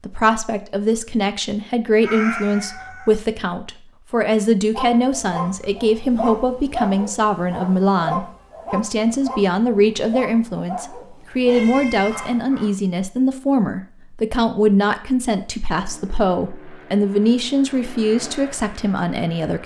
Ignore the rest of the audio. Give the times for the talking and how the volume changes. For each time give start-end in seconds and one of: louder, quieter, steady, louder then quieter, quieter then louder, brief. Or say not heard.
0.0-19.6 steady.